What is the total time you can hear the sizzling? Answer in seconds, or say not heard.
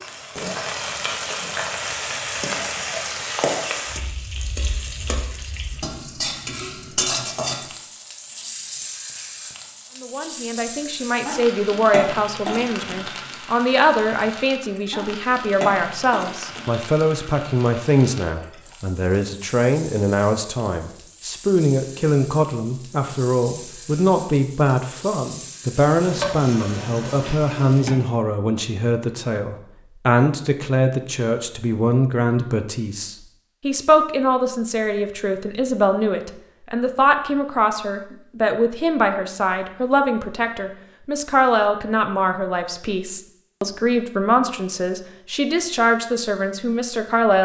28 s.